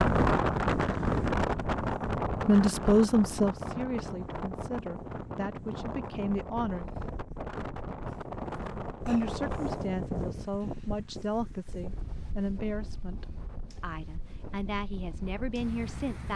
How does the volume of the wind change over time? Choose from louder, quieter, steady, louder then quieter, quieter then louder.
quieter.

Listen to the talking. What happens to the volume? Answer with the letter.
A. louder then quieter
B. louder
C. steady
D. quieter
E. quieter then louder
D.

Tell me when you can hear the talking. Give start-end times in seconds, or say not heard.
2.4-6.8, 9.1-16.3.